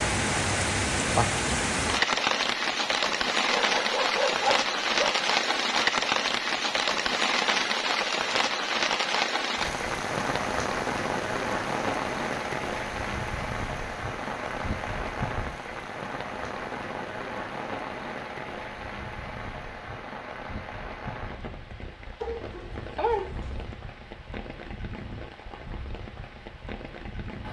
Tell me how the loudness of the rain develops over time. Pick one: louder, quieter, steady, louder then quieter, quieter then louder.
quieter.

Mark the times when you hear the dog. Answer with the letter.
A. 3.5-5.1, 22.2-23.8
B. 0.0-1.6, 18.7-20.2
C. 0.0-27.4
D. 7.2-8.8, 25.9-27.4
A.